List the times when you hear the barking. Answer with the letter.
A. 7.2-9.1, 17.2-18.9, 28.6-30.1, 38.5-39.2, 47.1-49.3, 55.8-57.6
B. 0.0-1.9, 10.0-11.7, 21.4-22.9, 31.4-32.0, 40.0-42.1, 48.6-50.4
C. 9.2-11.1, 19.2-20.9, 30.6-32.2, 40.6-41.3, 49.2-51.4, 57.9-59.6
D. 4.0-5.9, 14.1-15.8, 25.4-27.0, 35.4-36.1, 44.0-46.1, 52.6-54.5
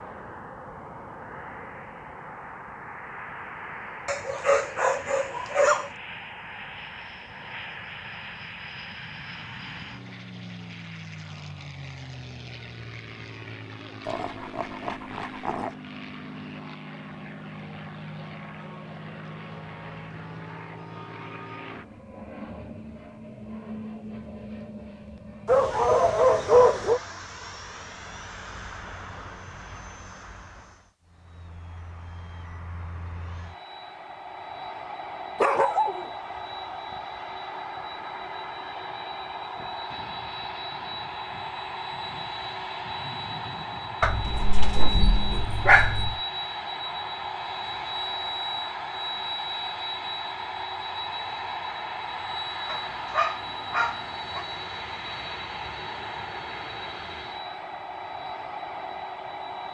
D.